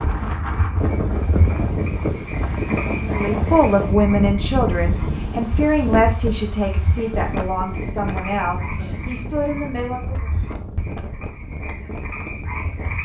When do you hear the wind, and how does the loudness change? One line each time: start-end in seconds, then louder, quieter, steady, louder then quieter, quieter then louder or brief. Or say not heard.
0.0-13.0 quieter.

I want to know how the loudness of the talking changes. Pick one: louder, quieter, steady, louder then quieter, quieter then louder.
quieter.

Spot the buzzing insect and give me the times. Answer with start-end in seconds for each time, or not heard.
not heard.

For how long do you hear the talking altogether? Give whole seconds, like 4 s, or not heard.
7 s.